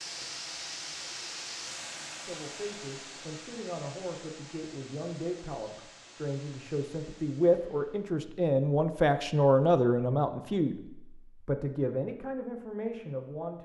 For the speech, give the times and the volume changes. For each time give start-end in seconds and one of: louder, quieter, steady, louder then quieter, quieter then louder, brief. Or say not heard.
2.2-13.6 louder then quieter.